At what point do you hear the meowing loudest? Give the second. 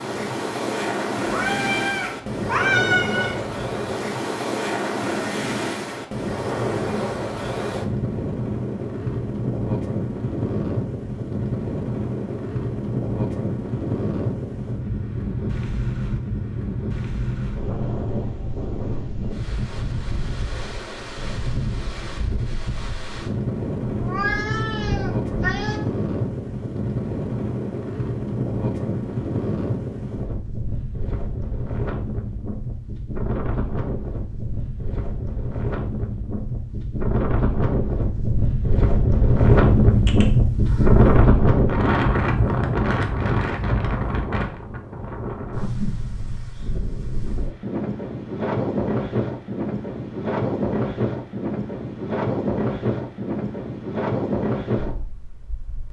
3 s.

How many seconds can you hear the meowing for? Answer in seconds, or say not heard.
5 s.